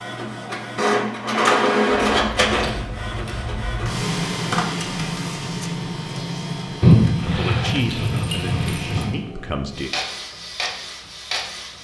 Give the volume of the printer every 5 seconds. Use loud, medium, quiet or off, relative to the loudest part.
loud, medium, medium.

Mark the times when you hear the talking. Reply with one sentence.
You can hear the talking from 7.2 to 9.9 s.